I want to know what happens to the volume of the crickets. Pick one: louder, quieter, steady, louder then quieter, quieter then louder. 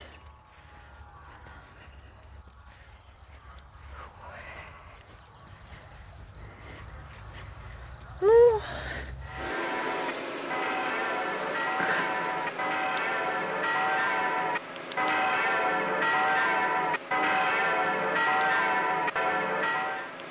louder then quieter.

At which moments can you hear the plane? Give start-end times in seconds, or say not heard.
not heard.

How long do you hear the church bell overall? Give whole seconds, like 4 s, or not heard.
11 s.